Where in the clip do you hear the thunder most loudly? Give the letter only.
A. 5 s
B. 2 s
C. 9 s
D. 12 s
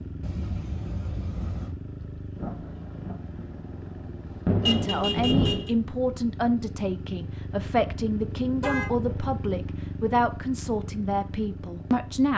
A.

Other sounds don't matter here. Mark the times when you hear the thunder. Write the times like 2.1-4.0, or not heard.
2.4-5.7.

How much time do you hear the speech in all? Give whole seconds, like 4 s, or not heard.
8 s.